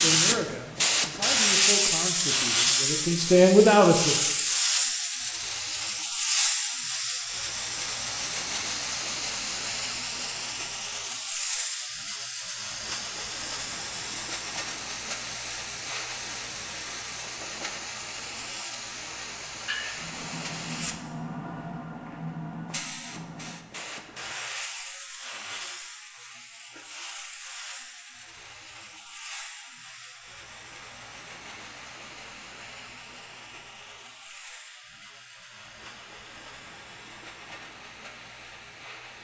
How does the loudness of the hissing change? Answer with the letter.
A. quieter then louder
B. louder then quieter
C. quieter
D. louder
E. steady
C.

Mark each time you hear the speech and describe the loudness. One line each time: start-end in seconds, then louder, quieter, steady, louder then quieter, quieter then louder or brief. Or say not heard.
0.0-4.3 louder.